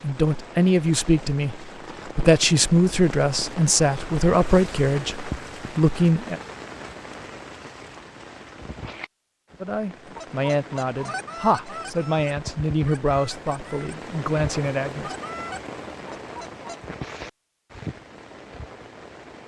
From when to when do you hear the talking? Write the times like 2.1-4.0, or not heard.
0.0-6.4, 9.6-15.2.